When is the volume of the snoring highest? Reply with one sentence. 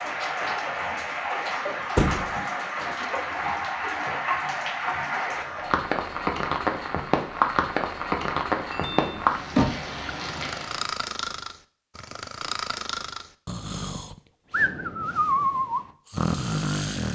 The volume of the snoring peaks at 15 seconds.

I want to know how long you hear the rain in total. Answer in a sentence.
The rain can be heard for 11 seconds in total.